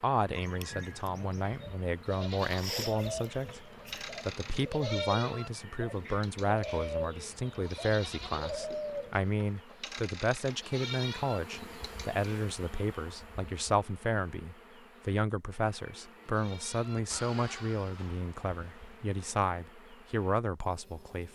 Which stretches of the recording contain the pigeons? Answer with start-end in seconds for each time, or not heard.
0.3-9.2.